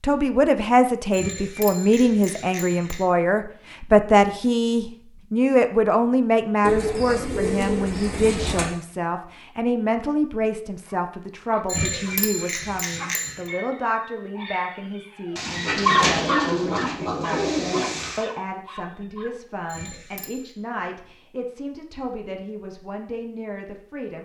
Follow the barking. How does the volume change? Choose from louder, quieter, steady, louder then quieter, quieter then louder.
louder then quieter.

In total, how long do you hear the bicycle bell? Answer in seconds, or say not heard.
5 s.